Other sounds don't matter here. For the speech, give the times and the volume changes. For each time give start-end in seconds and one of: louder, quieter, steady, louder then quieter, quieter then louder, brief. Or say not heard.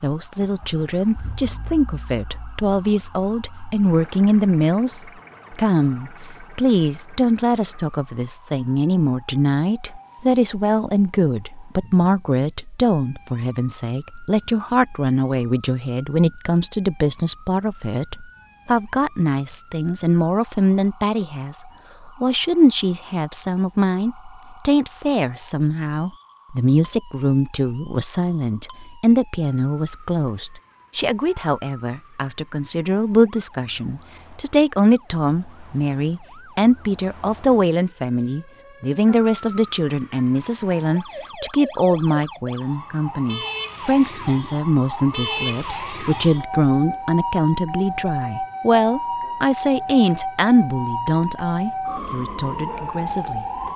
0.0-53.5 steady.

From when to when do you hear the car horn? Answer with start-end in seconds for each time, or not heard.
not heard.